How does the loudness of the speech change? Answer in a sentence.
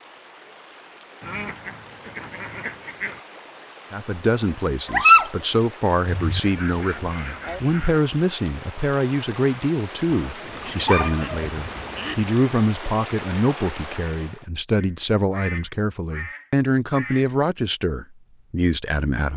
The volume of the speech stays about the same.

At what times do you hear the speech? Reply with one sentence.
You can hear the speech from 3.9 to 19.3 s.